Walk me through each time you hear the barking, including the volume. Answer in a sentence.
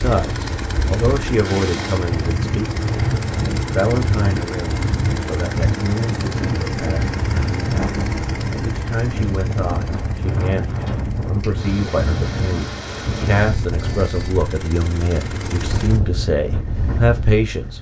You can't hear the barking here.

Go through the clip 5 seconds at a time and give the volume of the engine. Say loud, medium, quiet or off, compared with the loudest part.
loud, loud, medium, medium.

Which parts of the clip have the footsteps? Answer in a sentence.
You can't hear the footsteps here.